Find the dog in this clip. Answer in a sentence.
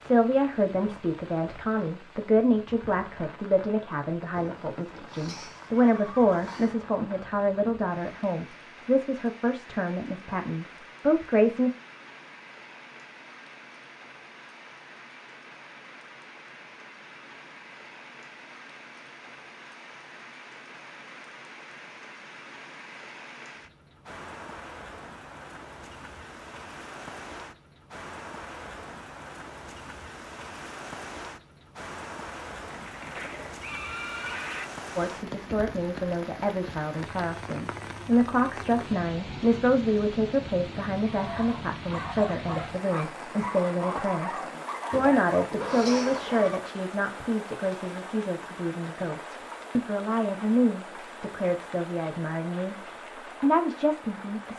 The dog can be heard from 41.0 to 46.5 s.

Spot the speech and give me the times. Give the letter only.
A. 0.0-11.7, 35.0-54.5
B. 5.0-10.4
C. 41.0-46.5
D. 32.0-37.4
A.